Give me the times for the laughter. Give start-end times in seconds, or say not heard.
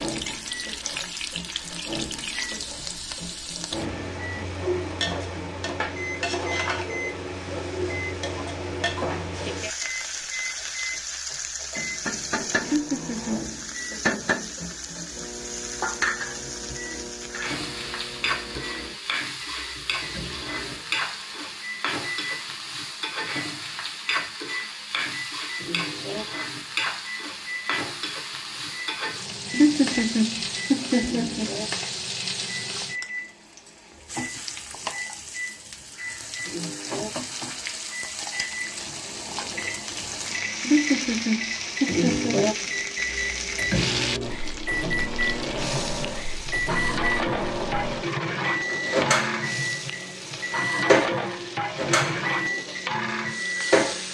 12.7-13.5, 29.5-31.5, 40.6-42.4.